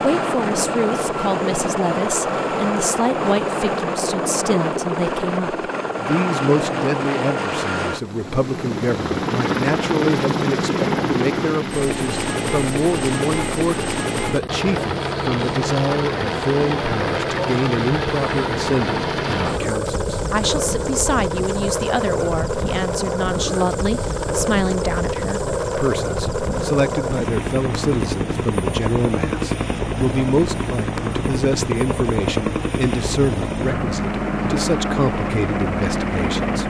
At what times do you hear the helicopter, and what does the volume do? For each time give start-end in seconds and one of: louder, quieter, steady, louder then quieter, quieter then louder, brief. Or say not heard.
0.0-36.6 steady.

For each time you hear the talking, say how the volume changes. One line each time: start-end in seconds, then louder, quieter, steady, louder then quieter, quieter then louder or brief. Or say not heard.
0.0-36.6 steady.